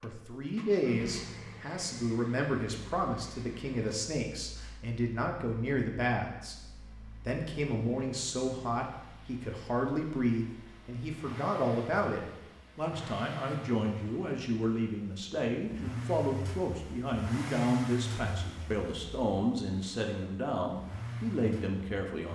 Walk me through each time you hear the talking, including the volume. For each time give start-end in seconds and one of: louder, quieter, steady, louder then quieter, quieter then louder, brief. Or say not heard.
0.0-22.3 steady.